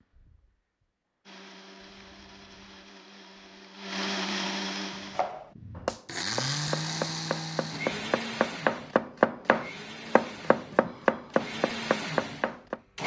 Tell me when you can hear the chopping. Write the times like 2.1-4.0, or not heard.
5.1-12.8.